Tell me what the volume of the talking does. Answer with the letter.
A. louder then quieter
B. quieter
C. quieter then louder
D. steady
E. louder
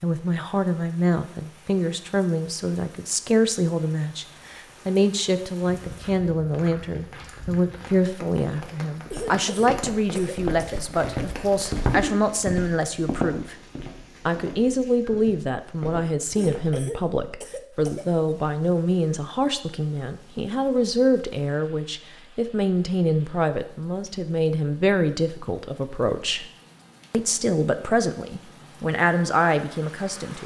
D.